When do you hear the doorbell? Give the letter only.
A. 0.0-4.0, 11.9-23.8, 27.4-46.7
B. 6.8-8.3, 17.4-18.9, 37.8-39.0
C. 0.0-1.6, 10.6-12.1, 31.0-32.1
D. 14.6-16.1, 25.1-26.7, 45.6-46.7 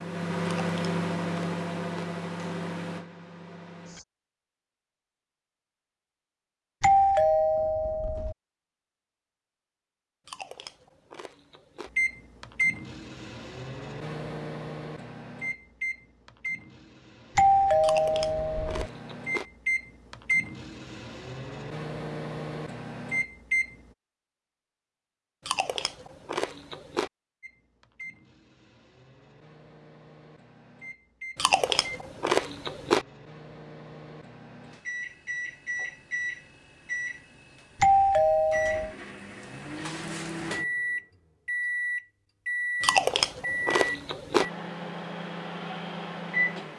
B.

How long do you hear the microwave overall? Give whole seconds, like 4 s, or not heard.
35 s.